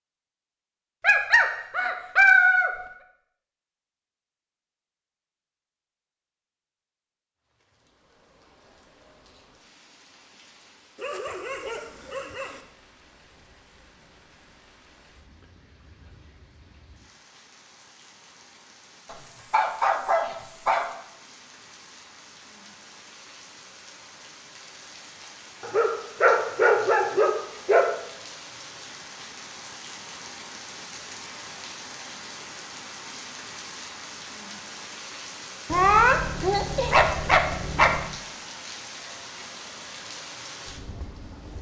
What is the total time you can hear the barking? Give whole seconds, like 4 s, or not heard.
10 s.